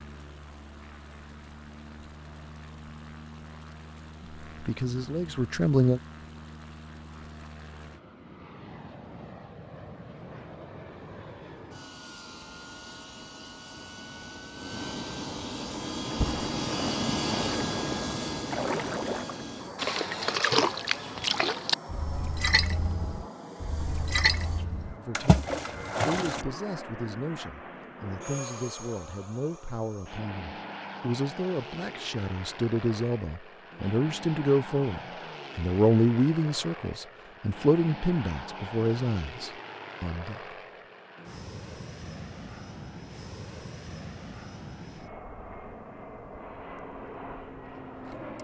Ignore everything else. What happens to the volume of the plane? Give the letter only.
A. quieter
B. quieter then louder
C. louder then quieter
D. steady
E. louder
C.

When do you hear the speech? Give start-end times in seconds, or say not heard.
4.6-6.0, 24.9-40.5.